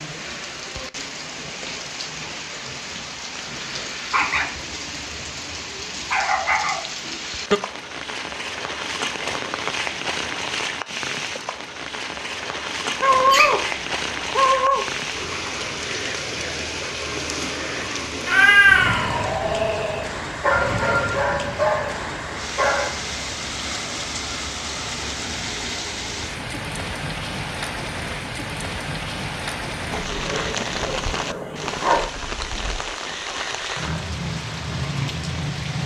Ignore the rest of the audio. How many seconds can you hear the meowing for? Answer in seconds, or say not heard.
2 s.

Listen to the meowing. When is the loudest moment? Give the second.
19 s.